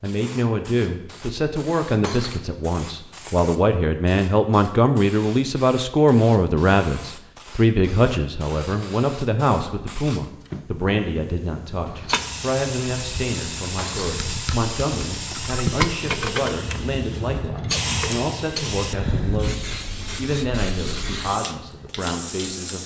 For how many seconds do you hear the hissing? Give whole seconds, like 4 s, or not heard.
23 s.